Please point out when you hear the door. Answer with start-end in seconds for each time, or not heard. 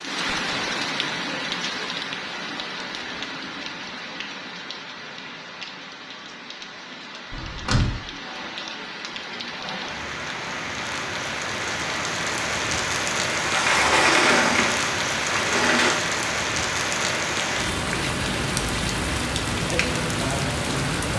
7.3-8.0, 13.3-16.1.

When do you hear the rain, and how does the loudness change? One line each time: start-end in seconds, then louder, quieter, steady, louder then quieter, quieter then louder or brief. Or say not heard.
0.0-21.1 quieter then louder.